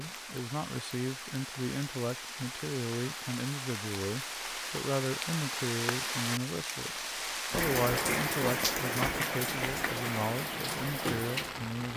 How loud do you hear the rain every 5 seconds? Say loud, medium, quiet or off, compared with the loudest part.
medium, loud, loud.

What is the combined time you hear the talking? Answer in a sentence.
You can hear the talking for 12 seconds altogether.